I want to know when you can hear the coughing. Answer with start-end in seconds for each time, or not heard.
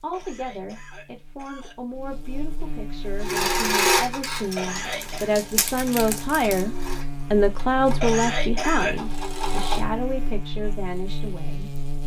0.1-1.8, 4.5-5.3, 8.0-9.0.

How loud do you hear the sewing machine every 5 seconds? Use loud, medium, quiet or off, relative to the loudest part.
loud, medium, off.